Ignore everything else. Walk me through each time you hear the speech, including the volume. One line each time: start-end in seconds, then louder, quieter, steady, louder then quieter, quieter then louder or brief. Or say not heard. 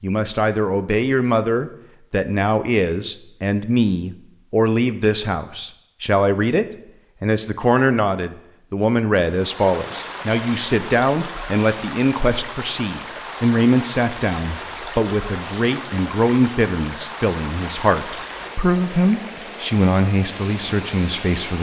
0.0-21.5 steady.